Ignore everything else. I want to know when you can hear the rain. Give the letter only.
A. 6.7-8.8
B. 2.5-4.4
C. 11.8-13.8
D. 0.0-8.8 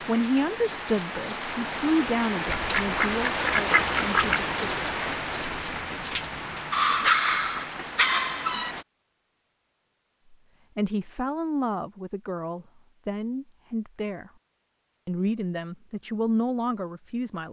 D.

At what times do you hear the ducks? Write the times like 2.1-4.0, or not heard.
2.5-4.4.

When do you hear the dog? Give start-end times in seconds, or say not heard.
6.7-8.8.